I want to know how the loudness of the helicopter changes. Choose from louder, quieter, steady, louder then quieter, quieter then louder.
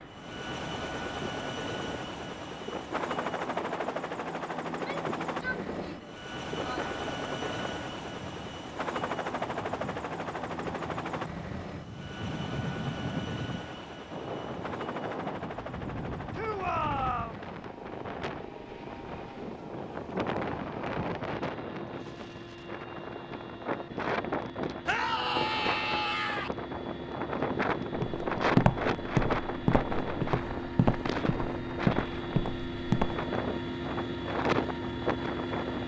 quieter then louder.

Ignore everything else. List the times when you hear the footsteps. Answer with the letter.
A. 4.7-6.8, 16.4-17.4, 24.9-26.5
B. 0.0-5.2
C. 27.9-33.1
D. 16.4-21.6
C.